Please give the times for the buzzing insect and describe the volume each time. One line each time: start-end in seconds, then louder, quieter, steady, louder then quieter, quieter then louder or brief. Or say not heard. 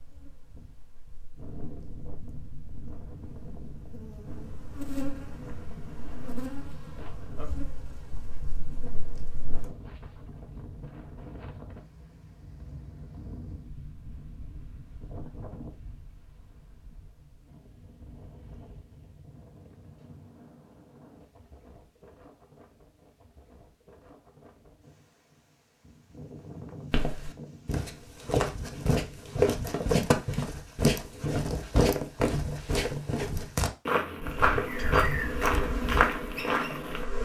0.0-9.8 louder then quieter
34.2-37.1 brief.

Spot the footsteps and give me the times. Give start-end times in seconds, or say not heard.
26.9-37.0.